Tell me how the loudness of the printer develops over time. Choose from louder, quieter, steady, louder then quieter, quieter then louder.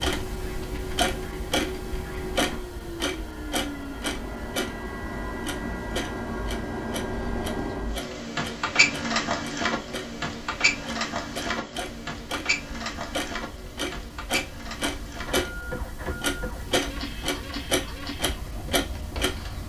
louder then quieter.